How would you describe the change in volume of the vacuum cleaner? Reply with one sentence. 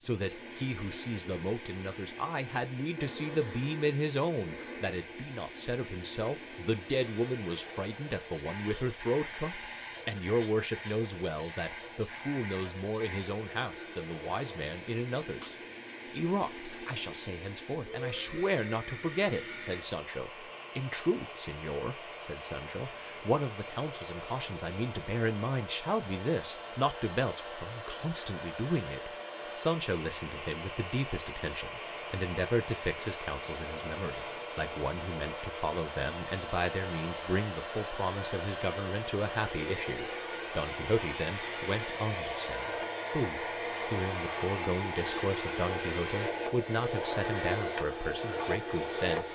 The volume of the vacuum cleaner goes up.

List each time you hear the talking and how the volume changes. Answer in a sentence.
The talking can be heard from 0.0 to 49.3 s, at a steady volume.